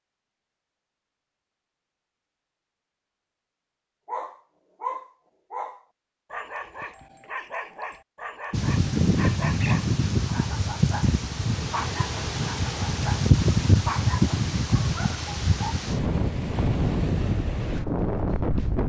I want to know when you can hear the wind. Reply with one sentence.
You can hear the wind from 8.5 to 18.8 s.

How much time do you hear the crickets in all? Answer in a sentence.
The crickets can't be heard in this clip.